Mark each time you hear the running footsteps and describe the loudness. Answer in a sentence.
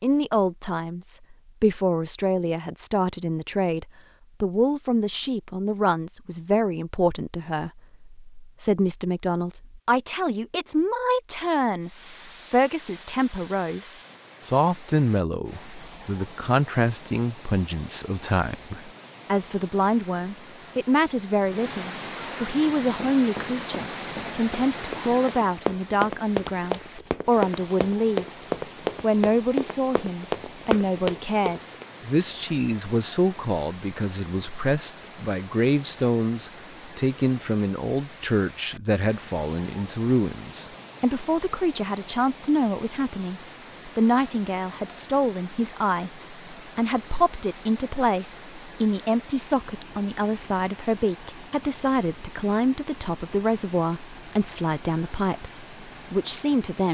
You can hear the running footsteps from 22.9 to 31.9 s, getting louder.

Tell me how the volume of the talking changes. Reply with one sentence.
The loudness of the talking stays about the same.